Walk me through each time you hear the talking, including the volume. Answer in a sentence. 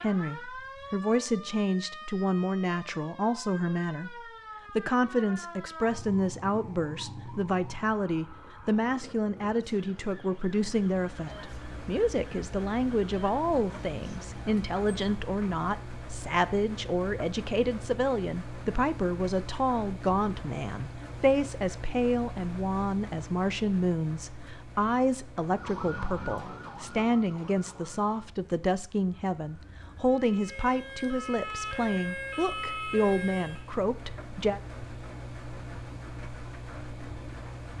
You can hear the talking from 0.0 to 34.6 s, at a steady volume.